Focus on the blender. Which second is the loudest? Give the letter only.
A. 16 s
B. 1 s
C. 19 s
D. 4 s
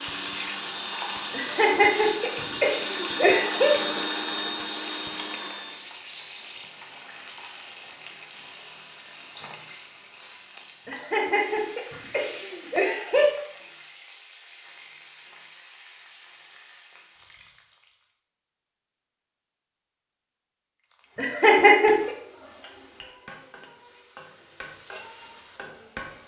D.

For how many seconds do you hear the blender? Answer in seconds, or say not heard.
6 s.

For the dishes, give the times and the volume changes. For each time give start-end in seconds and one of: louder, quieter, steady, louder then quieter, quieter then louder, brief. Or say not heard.
not heard.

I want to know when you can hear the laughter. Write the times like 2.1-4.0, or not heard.
1.3-3.8, 10.8-13.3, 21.1-22.1.